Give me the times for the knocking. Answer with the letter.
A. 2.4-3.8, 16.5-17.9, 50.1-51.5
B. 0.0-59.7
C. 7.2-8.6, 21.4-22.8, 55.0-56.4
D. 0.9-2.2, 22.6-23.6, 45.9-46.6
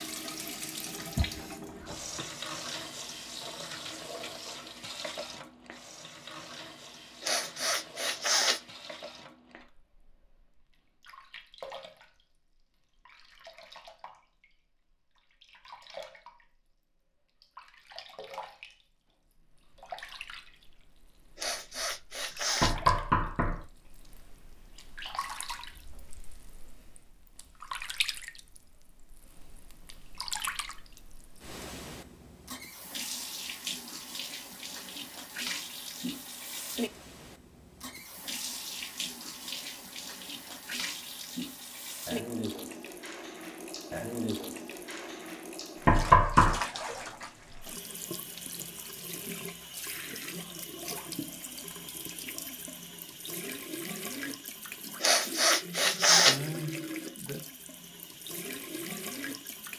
D.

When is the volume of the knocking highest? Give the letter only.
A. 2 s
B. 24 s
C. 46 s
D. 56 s
C.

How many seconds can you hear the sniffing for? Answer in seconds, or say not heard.
4 s.